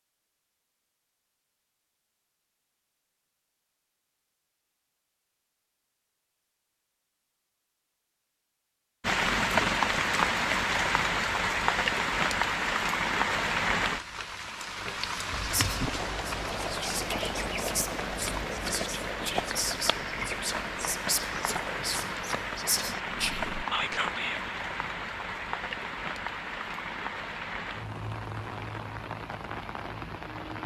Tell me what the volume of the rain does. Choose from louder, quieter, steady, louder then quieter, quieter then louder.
quieter.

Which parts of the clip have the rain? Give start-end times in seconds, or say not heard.
9.0-30.6.